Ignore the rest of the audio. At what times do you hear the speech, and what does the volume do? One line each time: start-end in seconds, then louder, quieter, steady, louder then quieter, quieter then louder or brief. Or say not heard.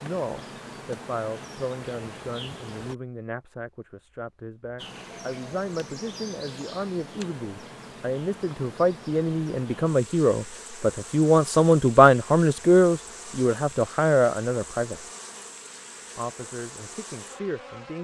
0.0-15.1 louder
16.1-17.9 brief.